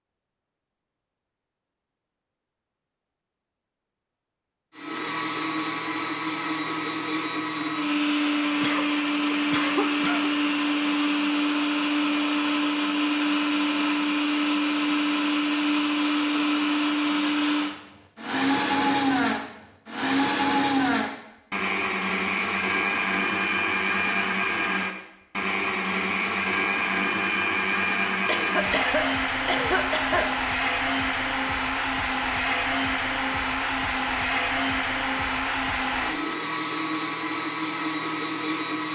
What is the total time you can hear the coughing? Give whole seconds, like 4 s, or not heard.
6 s.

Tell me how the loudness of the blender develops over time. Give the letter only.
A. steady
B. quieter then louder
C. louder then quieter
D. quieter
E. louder
A.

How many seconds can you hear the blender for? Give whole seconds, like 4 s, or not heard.
34 s.